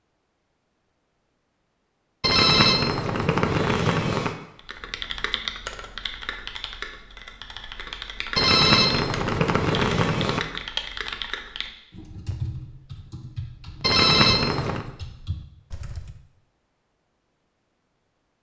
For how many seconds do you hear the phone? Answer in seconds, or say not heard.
5 s.